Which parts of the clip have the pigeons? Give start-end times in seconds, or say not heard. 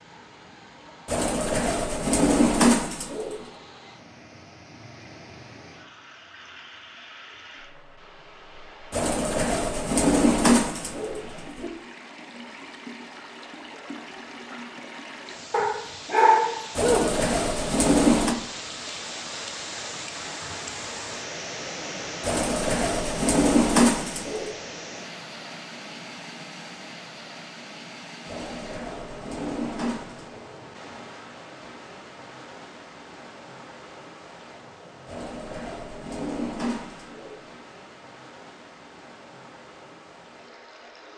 1.1-3.4, 8.9-11.7, 16.8-18.4, 22.2-24.5, 28.2-30.4, 35.0-37.4.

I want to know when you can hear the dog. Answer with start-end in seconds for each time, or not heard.
15.5-17.1.